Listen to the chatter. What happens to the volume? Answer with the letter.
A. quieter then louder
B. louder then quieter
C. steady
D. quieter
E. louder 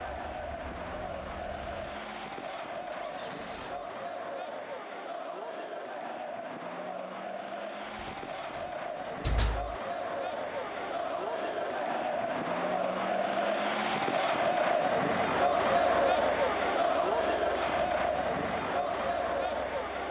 E.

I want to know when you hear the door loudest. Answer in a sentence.
The loudest moment of the door is at 9 seconds.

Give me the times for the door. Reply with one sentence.
You can hear the door from 8.0 to 9.8 s.